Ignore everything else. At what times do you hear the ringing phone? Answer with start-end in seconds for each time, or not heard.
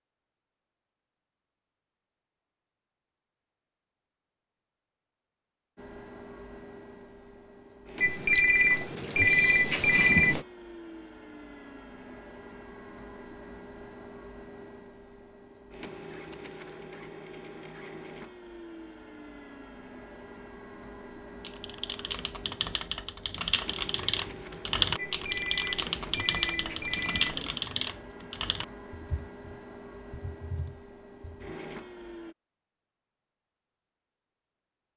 8.0-10.4, 24.9-27.8.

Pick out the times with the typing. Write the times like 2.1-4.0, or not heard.
21.4-31.5.